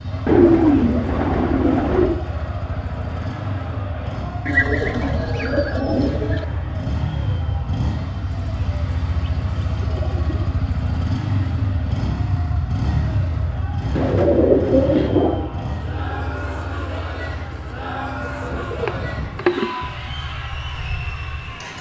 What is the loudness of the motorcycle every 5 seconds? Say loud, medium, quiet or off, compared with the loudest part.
medium, loud, loud, medium, medium.